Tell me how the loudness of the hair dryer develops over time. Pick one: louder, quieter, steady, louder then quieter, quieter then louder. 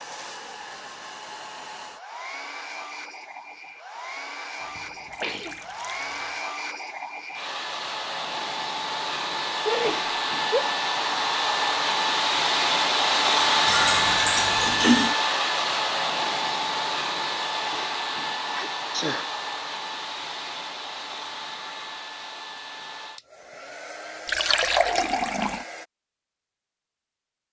louder then quieter.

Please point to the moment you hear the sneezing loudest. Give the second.
10 s.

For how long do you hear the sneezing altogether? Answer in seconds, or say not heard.
3 s.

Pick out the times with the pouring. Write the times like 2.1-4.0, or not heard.
5.1-6.4, 13.7-15.2, 24.2-25.6.